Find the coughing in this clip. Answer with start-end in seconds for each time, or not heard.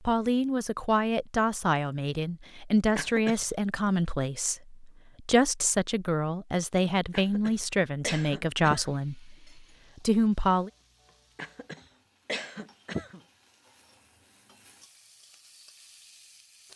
3.0-3.5, 7.1-8.9, 11.3-13.2.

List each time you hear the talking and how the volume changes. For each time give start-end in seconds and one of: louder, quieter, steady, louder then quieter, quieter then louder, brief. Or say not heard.
0.0-10.7 steady.